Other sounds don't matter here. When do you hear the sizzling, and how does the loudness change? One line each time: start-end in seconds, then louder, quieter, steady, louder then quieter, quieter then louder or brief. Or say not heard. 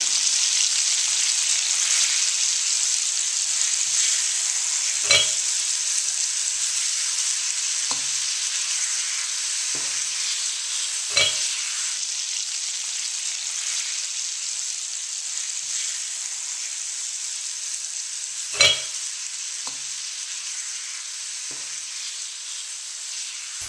0.0-23.6 quieter.